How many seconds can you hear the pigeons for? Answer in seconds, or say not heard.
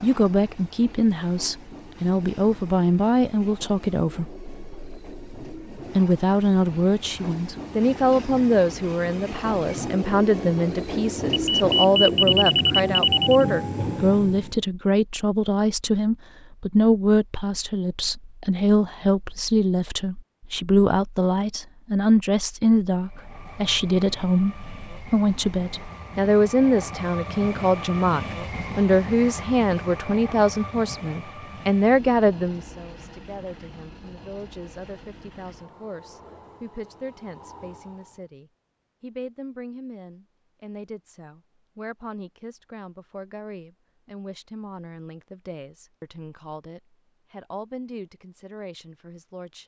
not heard.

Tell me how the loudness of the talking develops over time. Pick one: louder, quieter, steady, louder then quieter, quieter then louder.
quieter.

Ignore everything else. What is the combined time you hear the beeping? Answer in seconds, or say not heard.
2 s.